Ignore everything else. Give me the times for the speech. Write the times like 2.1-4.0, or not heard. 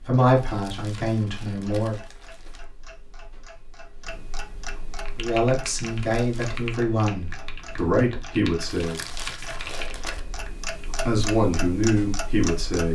0.0-1.9, 5.2-9.0, 11.1-12.8.